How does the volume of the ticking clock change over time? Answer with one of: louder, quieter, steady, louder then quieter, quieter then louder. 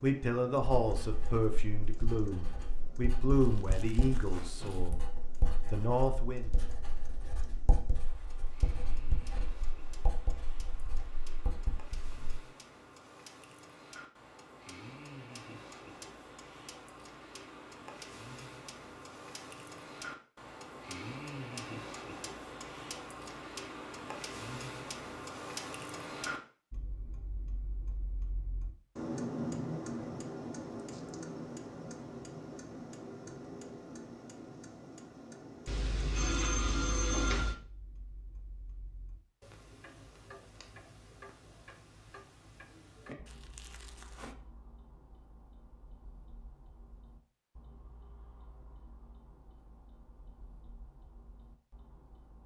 louder then quieter.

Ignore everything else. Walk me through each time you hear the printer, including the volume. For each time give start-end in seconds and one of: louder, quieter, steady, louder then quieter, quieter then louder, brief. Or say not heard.
not heard.